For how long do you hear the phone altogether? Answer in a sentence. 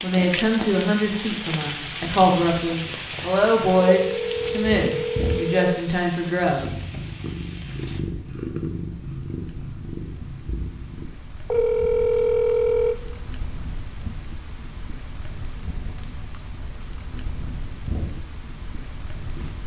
The phone can be heard for 3 seconds in total.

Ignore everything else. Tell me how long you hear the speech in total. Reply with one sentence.
You can hear the speech for 7 seconds altogether.